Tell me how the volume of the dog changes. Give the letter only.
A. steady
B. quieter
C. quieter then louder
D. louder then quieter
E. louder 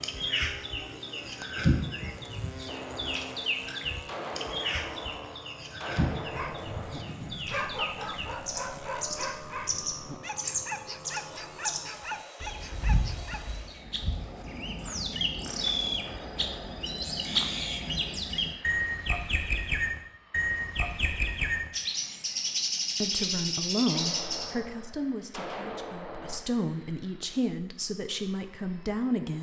A.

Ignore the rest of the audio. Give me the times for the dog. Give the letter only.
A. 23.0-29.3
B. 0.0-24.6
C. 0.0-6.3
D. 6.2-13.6
D.